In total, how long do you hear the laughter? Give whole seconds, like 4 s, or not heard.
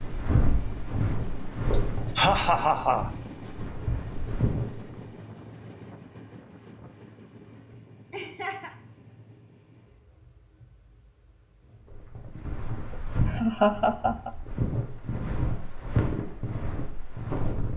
3 s.